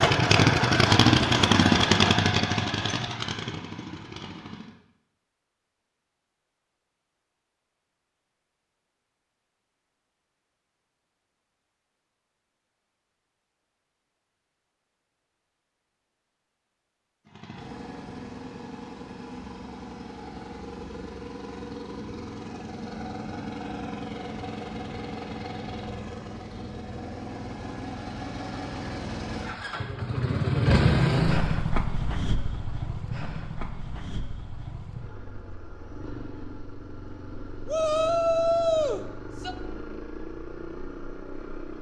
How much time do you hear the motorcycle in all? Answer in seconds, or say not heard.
29 s.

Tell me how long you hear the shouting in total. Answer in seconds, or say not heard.
2 s.